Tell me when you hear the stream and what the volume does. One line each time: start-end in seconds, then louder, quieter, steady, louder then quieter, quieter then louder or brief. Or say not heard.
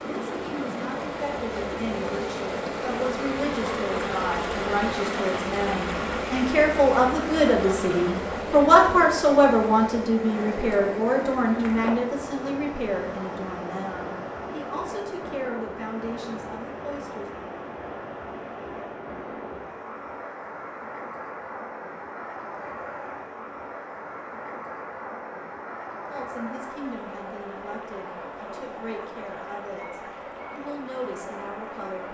0.0-32.0 quieter.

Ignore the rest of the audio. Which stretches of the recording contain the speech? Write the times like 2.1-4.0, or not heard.
0.0-17.3, 26.1-32.0.